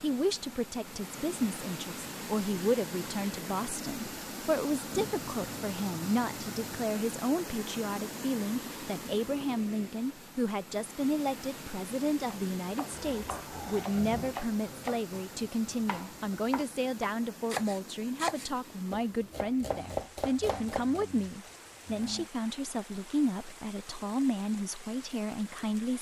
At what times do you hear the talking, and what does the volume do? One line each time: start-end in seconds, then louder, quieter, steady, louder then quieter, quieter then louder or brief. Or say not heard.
0.0-25.9 steady.